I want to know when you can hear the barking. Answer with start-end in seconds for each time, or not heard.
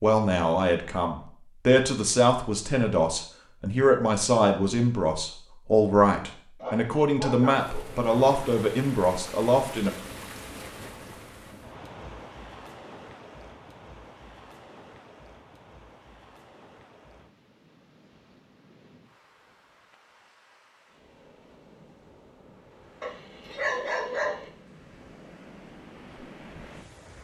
6.6-8.0, 23.0-24.5.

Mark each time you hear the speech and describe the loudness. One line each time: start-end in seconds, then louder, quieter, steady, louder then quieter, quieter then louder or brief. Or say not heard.
0.0-9.9 steady.